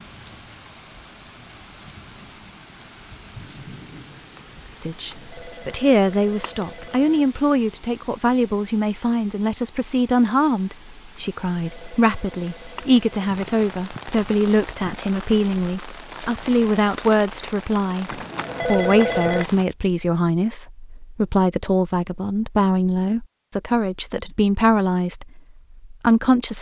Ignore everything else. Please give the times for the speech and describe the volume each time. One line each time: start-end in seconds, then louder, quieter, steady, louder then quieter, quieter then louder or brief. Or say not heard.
4.8-26.5 steady.